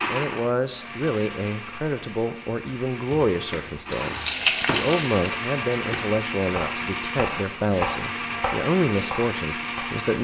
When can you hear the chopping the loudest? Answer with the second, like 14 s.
8 s.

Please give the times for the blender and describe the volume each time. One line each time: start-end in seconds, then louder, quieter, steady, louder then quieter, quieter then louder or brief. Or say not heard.
0.0-10.1 louder.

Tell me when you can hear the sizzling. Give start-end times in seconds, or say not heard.
3.9-6.0.